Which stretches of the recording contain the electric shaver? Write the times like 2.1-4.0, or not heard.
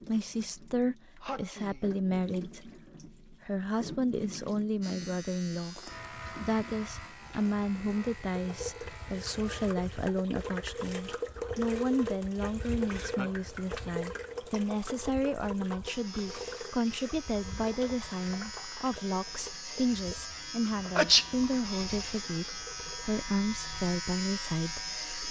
4.8-9.7, 15.8-25.2.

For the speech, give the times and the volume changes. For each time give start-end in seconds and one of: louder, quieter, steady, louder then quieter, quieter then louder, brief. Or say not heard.
0.1-25.2 steady.